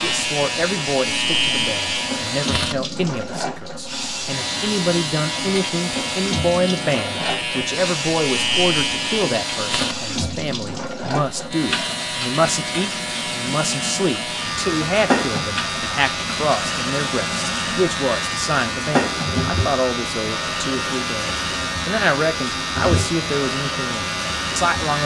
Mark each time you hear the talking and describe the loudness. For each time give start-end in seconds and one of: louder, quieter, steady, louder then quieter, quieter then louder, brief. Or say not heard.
0.0-25.0 steady.